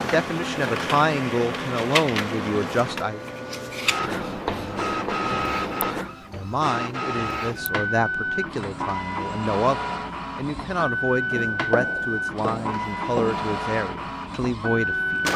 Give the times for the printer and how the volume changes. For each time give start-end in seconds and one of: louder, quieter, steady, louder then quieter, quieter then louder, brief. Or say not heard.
0.0-15.3 steady.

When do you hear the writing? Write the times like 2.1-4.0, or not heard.
4.0-6.0, 11.3-13.4.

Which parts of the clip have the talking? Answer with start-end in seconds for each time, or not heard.
0.0-3.2, 6.3-15.3.